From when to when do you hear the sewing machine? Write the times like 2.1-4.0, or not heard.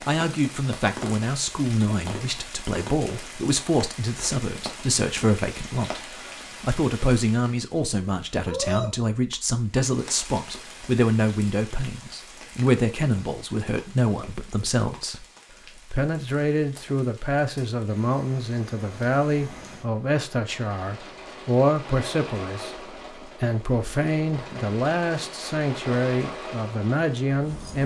not heard.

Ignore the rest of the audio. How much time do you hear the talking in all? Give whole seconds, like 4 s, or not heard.
28 s.